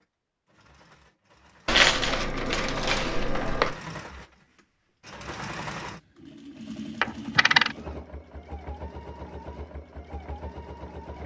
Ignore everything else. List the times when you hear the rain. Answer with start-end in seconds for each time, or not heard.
not heard.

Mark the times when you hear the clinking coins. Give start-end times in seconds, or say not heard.
1.6-3.8, 7.0-7.8.